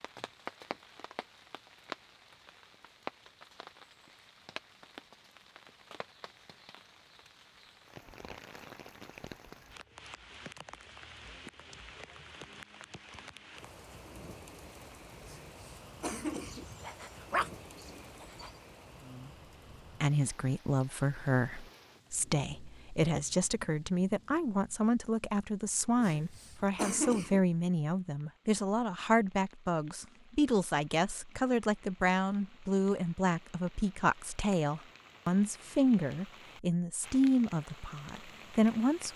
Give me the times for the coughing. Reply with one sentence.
You can hear the coughing from 15.2 to 16.6 s and from 26.0 to 27.4 s.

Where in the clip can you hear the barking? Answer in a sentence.
The barking can be heard from 16.4 to 18.5 s.